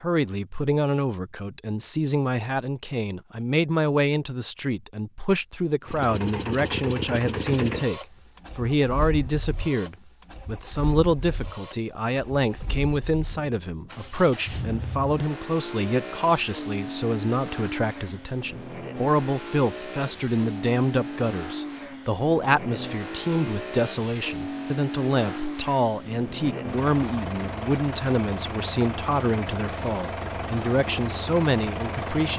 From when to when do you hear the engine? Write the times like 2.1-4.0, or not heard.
5.8-32.3.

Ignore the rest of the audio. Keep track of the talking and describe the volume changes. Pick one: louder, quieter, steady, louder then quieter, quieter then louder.
steady.